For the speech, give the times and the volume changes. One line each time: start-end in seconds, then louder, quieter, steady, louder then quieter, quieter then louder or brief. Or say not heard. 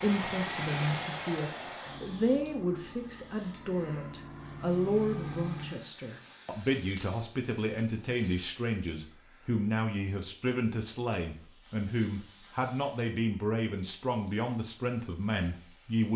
0.0-16.1 steady.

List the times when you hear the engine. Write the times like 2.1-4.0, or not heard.
0.0-5.9.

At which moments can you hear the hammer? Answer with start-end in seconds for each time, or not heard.
not heard.